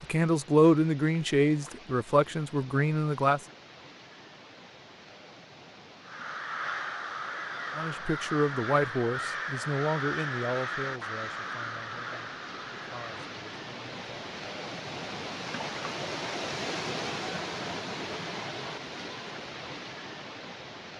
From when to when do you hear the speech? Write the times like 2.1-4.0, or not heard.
0.0-3.4, 7.8-14.1.